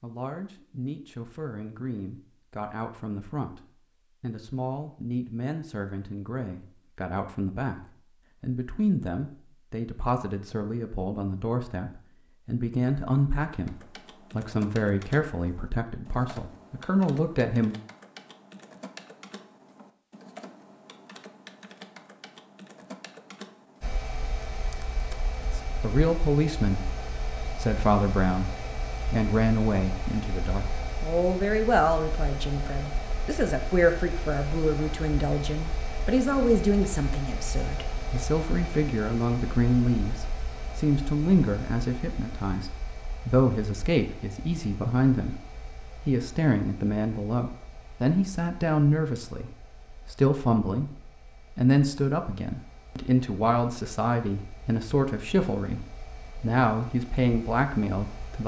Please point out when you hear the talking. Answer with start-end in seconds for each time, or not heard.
0.0-17.8, 25.4-51.0, 51.5-58.4.